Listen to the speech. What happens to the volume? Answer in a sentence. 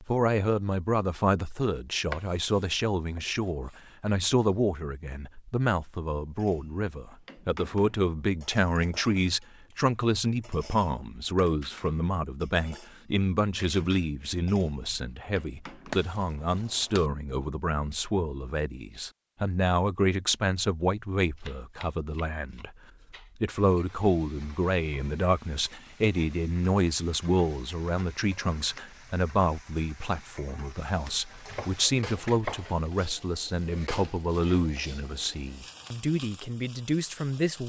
The volume of the speech stays about the same.